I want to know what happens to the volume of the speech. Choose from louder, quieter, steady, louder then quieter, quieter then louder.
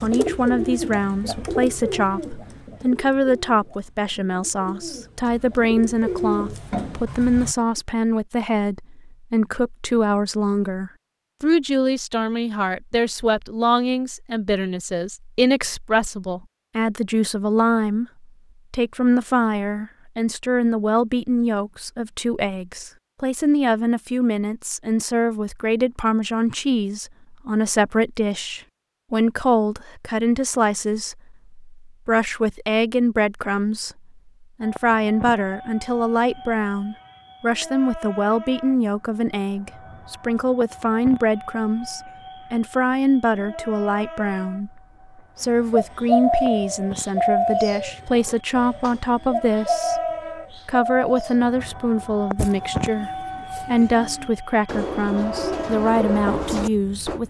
steady.